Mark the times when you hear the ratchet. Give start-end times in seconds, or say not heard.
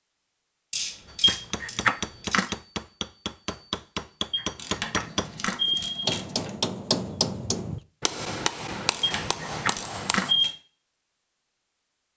0.7-2.5, 4.5-6.5, 8.9-10.6.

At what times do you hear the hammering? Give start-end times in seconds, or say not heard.
1.1-10.3.